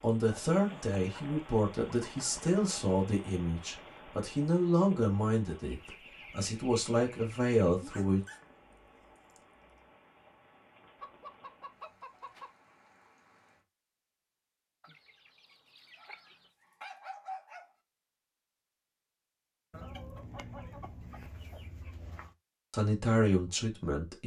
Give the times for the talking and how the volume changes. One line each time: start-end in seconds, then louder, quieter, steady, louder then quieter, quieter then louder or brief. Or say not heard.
0.0-8.2 steady
22.7-24.2 brief.